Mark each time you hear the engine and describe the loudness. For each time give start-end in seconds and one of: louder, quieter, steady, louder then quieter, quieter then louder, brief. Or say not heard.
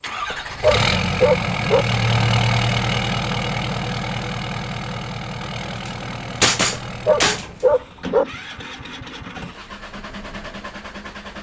0.0-11.3 quieter.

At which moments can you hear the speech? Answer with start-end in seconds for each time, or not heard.
not heard.